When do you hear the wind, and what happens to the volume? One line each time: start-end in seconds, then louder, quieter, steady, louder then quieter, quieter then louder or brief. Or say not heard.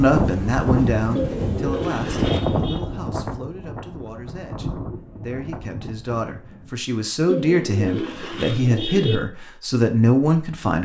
0.0-6.7 quieter.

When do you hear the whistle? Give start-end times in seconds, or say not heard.
not heard.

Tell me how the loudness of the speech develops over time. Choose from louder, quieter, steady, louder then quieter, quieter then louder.
quieter then louder.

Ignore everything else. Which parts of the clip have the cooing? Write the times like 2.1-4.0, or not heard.
1.1-2.8, 7.2-9.2.